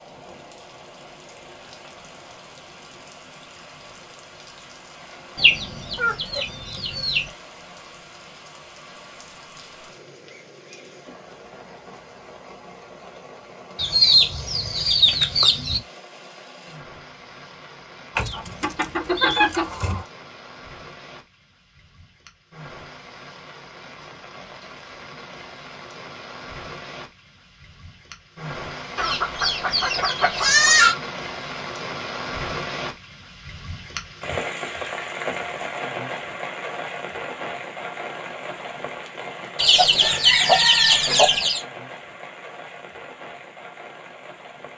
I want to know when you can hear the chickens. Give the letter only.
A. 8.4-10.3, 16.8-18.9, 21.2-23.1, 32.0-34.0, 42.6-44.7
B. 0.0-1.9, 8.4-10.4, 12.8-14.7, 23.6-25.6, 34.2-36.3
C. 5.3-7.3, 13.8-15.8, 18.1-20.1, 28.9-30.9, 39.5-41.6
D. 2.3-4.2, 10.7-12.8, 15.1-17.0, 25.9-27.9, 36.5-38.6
C.